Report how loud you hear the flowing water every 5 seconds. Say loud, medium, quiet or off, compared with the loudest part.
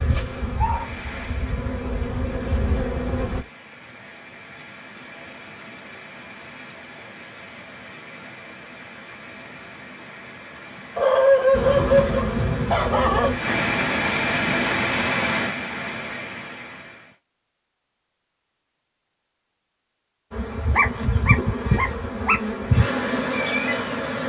quiet, quiet, loud, loud, off.